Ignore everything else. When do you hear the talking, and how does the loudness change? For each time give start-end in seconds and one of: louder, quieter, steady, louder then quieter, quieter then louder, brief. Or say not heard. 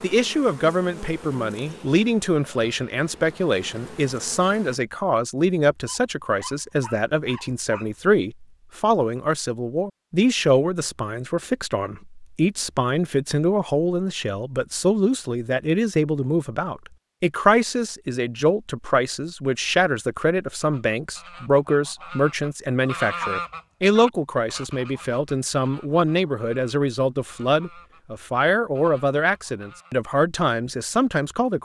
0.0-31.5 steady.